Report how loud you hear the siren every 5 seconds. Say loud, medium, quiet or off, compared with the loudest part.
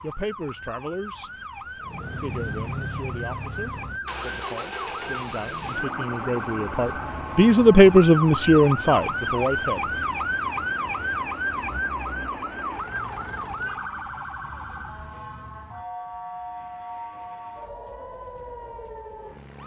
medium, loud, loud, medium.